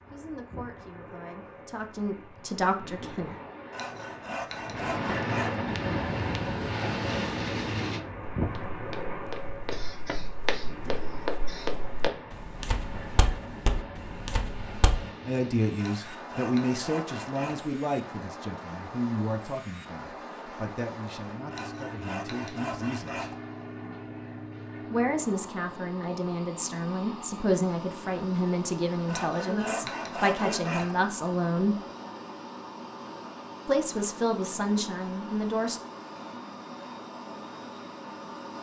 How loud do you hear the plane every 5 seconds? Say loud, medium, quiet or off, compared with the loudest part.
medium, loud, medium, medium, medium, medium, medium, medium.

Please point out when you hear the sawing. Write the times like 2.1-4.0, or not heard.
3.7-5.6, 15.8-17.6, 21.5-23.4, 29.1-30.9.